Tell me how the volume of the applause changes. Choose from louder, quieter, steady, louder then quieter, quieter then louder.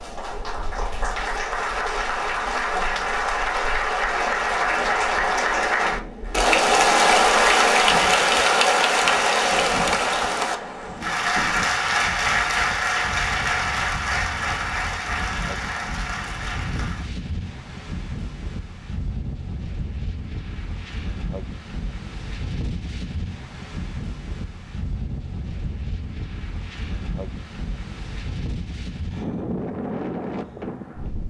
louder then quieter.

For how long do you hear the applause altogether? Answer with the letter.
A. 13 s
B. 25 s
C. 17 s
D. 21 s
C.